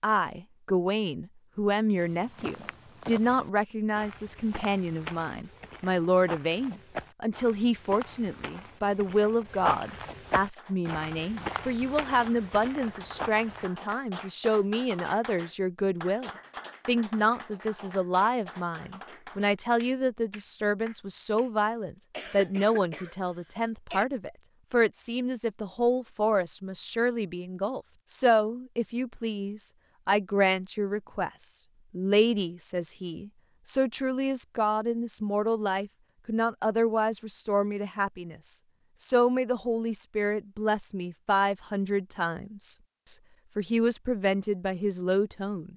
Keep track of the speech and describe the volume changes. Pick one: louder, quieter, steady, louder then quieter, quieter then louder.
steady.